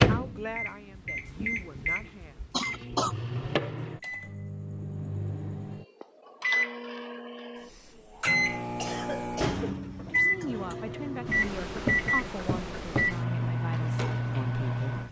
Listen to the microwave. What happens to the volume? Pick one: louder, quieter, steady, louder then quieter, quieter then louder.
louder.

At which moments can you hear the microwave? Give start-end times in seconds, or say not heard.
0.0-15.0.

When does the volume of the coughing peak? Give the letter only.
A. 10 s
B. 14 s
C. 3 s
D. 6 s
C.